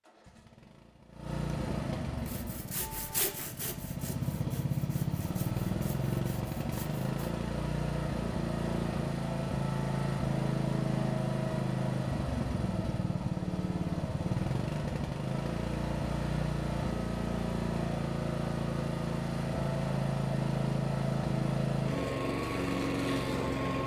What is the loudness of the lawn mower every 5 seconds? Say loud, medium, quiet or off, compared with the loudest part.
medium, loud, loud, loud, loud.